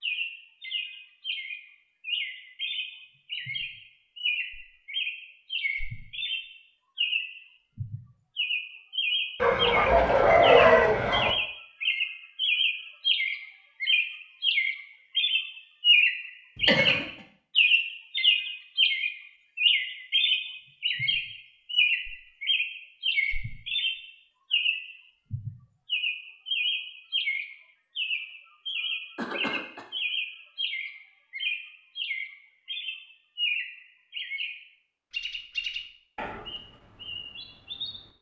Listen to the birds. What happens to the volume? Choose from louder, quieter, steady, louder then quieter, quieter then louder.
louder then quieter.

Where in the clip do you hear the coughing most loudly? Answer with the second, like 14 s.
17 s.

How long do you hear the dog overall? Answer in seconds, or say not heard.
2 s.